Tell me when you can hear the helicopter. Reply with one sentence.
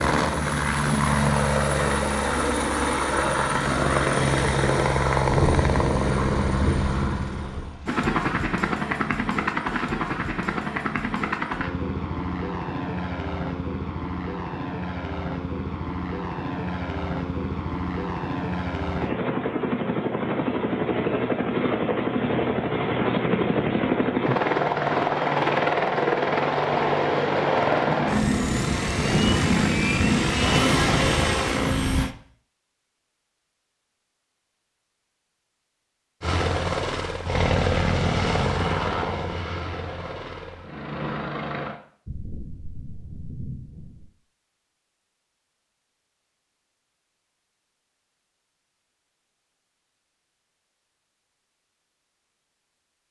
The helicopter can be heard from 0.0 to 32.1 s and from 36.2 to 41.8 s.